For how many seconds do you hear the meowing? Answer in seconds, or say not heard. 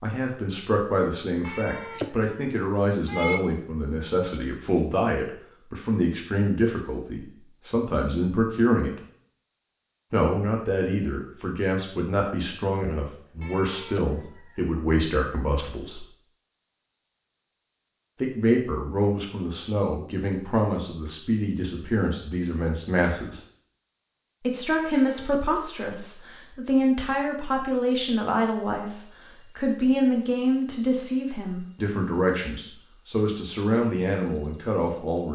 4 s.